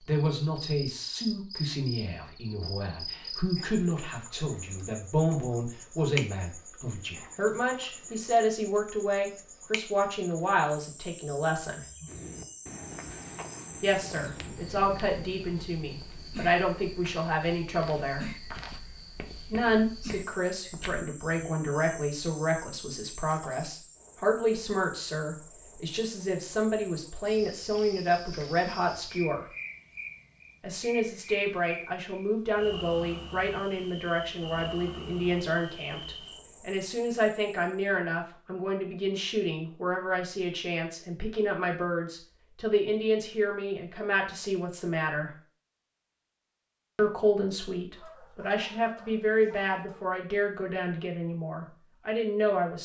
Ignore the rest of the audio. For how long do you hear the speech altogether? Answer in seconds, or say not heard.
47 s.